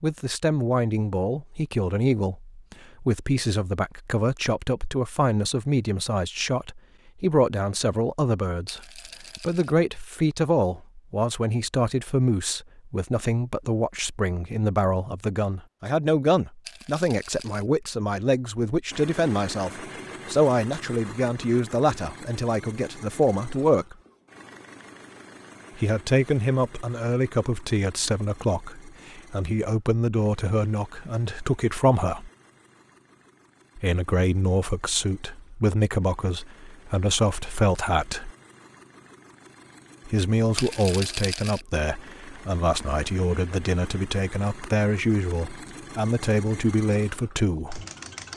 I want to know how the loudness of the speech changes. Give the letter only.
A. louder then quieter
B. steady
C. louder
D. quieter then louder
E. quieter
B.